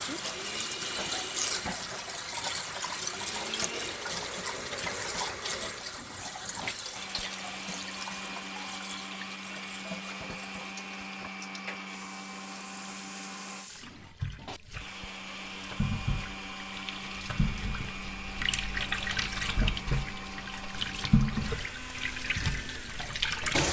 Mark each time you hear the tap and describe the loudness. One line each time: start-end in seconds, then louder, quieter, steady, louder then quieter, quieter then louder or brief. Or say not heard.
0.0-23.6 quieter then louder.